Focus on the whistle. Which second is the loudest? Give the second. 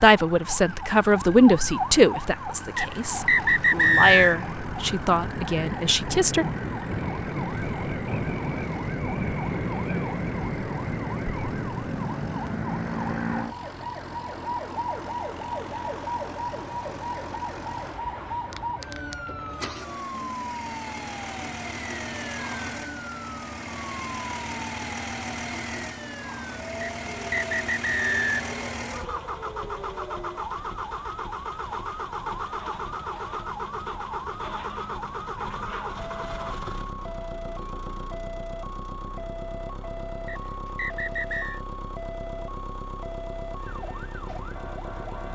4 s.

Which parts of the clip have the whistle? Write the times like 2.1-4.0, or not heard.
2.8-4.3, 26.8-28.4, 40.2-41.6.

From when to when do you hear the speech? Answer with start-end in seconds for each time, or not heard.
0.0-6.5.